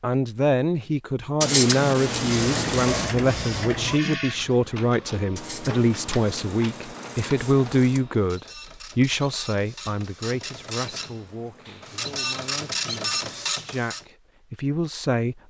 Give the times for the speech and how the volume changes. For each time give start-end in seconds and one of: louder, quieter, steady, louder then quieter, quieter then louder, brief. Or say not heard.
0.0-15.3 quieter.